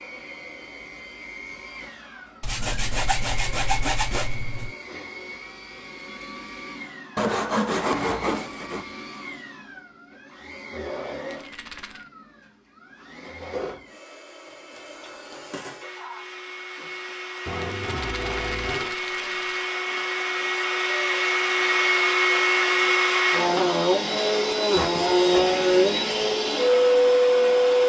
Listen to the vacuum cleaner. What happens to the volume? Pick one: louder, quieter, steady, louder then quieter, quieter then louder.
louder.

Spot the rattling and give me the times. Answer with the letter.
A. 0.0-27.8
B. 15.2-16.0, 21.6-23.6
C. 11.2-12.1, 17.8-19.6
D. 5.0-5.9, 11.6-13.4
C.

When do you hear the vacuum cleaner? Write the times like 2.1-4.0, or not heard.
0.0-27.8.